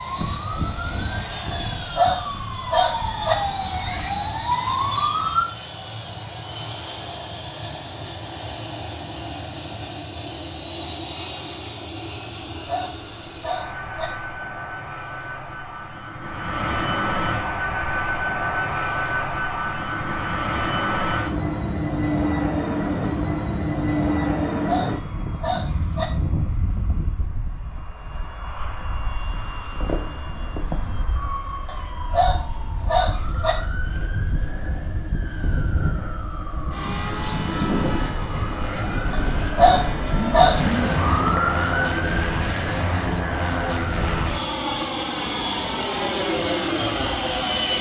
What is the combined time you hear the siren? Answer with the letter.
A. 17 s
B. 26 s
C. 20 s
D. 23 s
D.